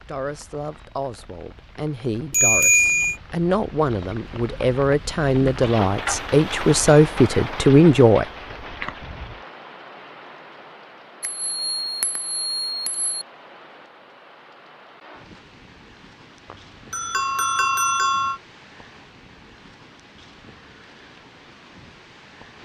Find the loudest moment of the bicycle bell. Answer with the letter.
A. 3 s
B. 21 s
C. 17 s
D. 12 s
A.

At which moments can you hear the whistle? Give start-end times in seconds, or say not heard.
not heard.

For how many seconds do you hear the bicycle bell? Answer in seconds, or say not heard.
5 s.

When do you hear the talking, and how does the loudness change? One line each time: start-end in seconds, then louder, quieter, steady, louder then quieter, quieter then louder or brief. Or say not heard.
0.1-8.2 louder.